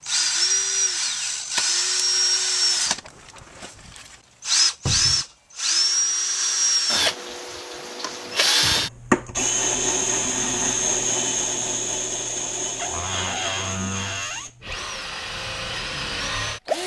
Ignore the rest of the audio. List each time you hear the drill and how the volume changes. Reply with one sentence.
The drill can be heard from 0.0 to 16.8 s, getting quieter.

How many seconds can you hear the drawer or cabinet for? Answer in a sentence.
The drawer or cabinet can be heard for 2 seconds in total.